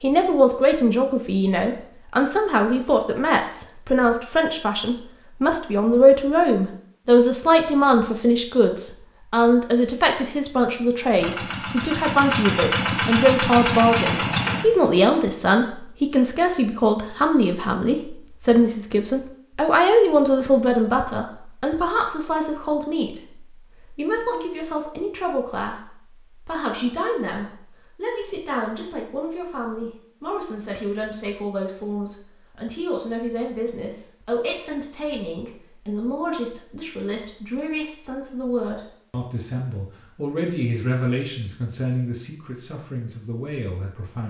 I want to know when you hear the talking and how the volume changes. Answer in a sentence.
The talking can be heard from 0.0 to 44.2 s, getting quieter.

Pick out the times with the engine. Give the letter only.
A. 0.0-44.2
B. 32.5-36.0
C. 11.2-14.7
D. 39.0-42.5
C.